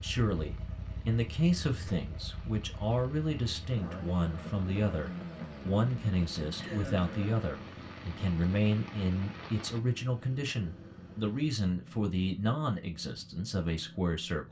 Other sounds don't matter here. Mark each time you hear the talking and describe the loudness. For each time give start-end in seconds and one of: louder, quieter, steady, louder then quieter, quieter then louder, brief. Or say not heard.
0.0-14.4 steady.